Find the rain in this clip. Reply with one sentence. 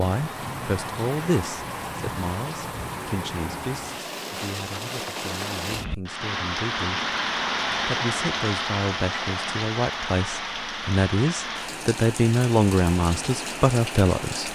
The rain can be heard from 0.0 to 14.5 s.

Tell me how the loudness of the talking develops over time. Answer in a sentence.
The loudness of the talking goes down, then up.